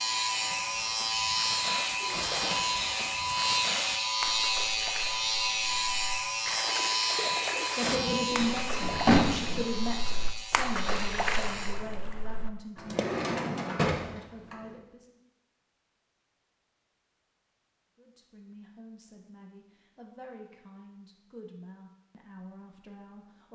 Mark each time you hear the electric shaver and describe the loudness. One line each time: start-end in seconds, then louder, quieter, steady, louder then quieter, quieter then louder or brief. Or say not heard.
0.0-11.8 quieter.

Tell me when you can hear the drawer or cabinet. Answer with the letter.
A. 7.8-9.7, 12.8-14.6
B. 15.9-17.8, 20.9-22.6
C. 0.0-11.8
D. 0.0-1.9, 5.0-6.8
A.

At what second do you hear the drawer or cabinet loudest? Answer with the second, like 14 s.
9 s.